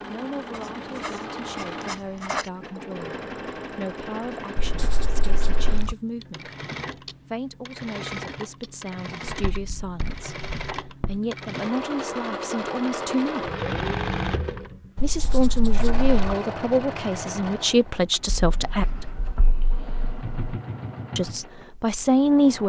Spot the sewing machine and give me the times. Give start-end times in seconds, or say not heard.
0.0-22.6.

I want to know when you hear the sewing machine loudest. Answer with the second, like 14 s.
14 s.